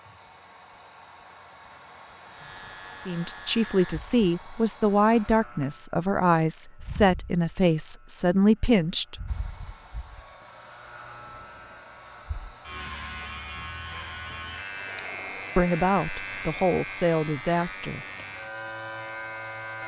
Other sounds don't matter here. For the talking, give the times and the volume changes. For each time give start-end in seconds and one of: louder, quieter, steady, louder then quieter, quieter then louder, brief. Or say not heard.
3.0-9.2 steady
15.6-18.1 brief.